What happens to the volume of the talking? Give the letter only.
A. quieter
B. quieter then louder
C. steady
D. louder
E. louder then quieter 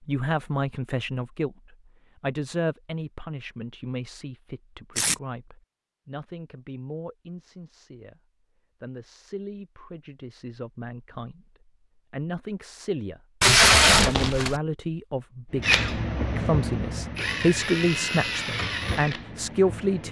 B.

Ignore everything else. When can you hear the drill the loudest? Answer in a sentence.
The volume of the drill peaks at 16 seconds.